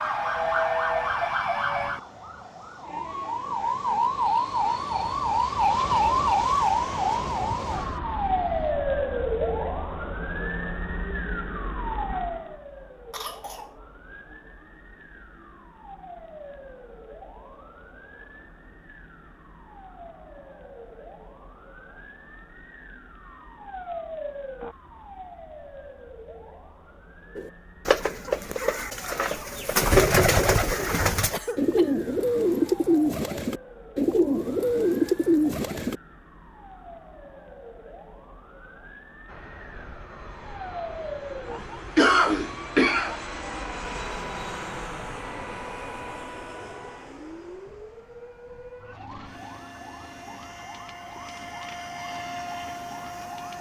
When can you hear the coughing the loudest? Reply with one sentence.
The volume of the coughing peaks at 42 seconds.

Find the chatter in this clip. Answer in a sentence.
The chatter can't be heard in this clip.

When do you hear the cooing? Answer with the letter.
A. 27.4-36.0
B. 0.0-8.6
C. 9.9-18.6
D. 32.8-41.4
A.